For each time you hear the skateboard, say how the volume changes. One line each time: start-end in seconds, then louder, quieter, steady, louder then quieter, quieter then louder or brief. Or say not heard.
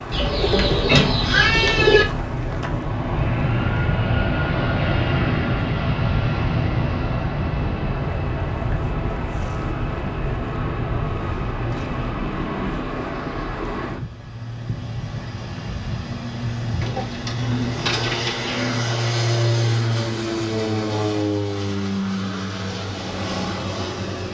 not heard.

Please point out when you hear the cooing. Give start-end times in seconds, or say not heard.
0.1-2.0, 16.8-18.8.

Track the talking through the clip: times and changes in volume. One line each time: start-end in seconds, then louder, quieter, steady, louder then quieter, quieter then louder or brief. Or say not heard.
not heard.